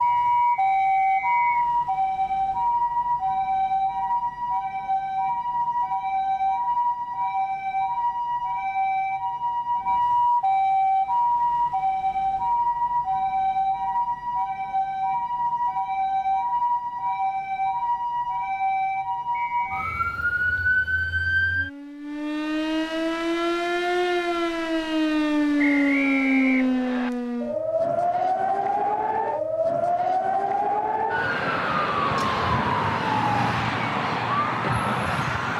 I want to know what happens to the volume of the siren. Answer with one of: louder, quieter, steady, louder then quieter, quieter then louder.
steady.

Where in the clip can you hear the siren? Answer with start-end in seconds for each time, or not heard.
0.0-35.5.